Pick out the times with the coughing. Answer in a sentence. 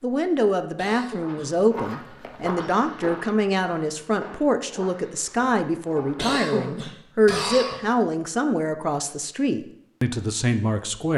The coughing can be heard from 0.8 to 1.5 s and from 6.2 to 7.8 s.